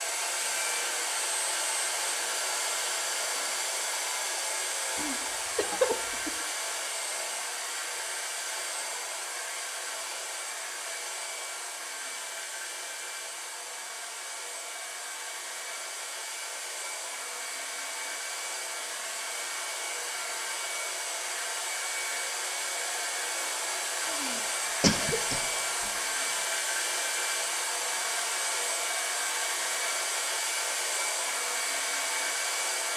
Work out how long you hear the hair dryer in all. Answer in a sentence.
You can hear the hair dryer for 33 seconds altogether.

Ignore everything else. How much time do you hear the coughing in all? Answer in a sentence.
You can hear the coughing for 3 seconds altogether.